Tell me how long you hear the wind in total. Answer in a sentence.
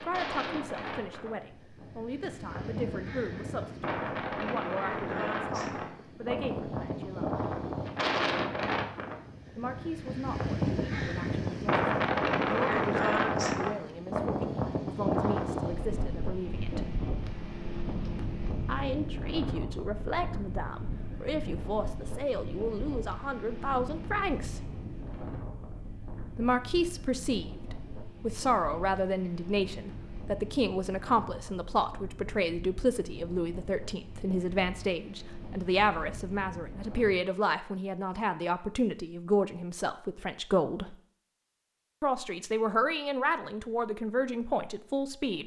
The wind can be heard for 37 seconds in total.